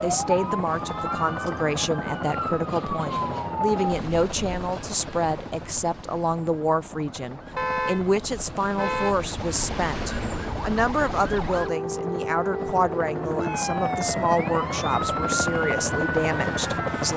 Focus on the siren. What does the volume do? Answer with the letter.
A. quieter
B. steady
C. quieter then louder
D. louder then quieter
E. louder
C.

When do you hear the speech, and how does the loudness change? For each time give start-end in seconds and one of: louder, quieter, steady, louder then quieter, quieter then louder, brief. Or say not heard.
0.0-17.1 steady.